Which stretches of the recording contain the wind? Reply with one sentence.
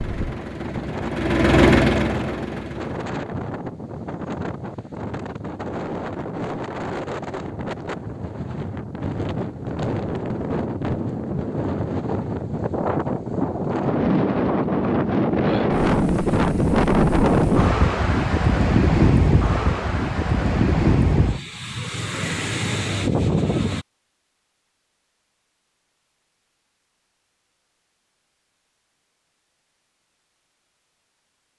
The wind can be heard from 0.0 to 23.9 s.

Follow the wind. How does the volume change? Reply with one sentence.
The loudness of the wind goes up.